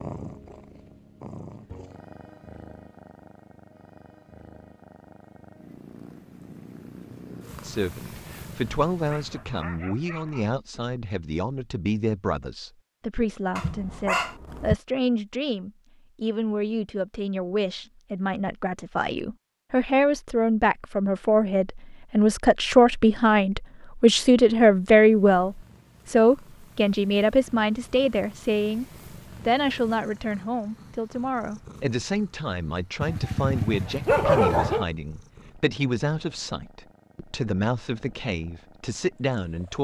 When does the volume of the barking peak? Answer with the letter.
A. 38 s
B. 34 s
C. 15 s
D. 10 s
B.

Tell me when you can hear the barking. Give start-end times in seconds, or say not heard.
9.1-10.6, 13.6-14.8, 33.0-34.9.